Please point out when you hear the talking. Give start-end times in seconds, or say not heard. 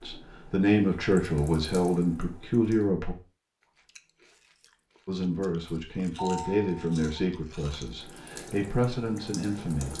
0.0-3.1, 5.0-9.9.